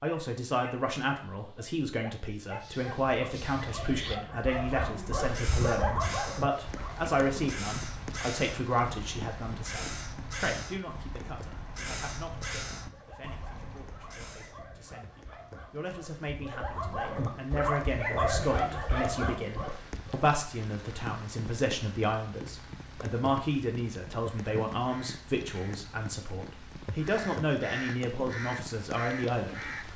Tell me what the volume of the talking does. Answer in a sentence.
The loudness of the talking goes down, then up.